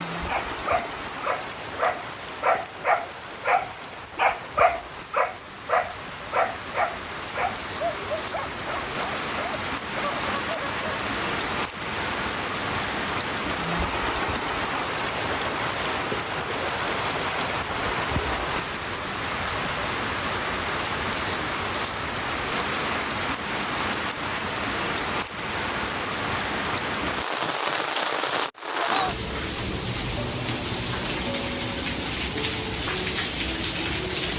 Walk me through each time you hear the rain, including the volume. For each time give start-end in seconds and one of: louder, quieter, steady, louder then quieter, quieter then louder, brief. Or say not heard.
0.0-34.3 louder.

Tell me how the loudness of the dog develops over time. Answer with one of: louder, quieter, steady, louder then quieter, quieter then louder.
quieter.